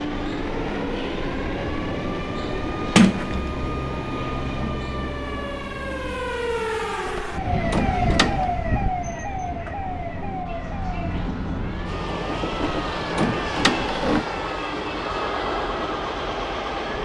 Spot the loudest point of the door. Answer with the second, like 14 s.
3 s.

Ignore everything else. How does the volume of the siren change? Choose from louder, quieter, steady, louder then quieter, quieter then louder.
louder then quieter.